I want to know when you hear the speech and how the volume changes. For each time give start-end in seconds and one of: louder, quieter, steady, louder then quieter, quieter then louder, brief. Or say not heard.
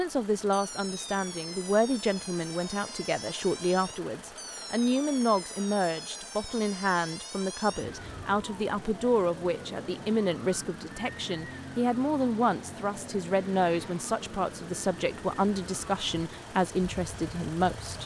0.0-18.0 steady.